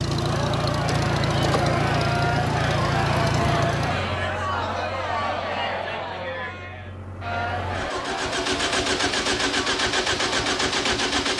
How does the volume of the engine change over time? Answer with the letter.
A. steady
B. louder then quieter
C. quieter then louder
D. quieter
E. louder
C.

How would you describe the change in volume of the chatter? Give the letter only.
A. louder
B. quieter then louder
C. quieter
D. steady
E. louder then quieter
C.